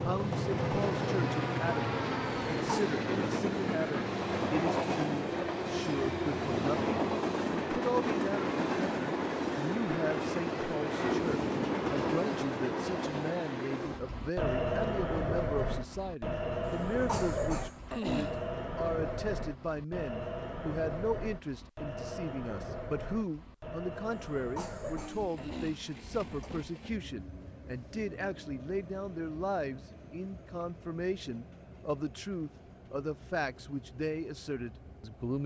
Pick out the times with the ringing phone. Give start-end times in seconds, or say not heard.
not heard.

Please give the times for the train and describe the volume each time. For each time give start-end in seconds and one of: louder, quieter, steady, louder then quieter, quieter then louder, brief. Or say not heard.
0.0-35.4 quieter.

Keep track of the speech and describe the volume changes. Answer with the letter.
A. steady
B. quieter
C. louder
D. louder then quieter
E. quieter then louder
A.